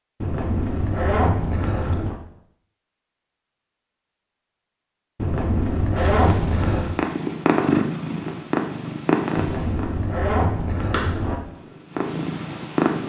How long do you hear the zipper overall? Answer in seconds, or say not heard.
6 s.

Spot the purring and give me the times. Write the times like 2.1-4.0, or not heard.
6.0-13.0.